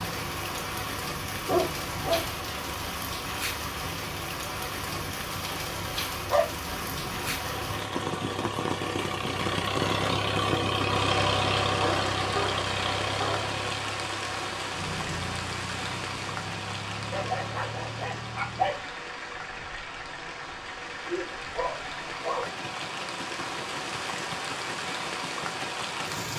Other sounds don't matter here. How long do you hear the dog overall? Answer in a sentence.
You can hear the dog for 7 seconds altogether.